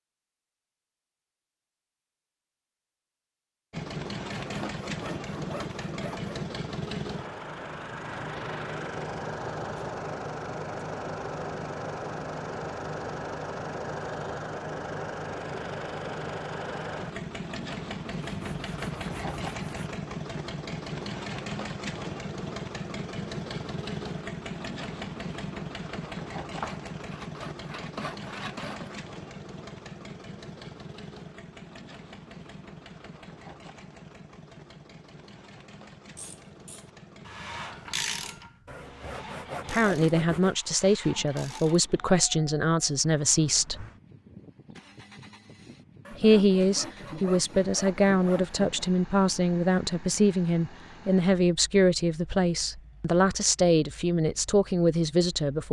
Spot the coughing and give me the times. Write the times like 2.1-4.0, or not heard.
not heard.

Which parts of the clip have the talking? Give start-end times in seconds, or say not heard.
39.7-43.9, 46.1-55.6.